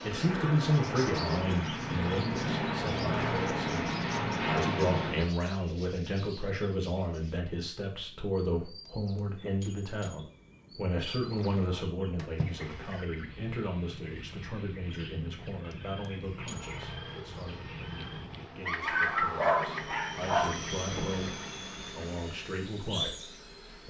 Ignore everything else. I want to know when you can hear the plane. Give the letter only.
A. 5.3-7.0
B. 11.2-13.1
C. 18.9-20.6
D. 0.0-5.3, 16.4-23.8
D.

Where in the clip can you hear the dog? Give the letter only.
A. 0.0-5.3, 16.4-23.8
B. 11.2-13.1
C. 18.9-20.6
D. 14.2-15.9
C.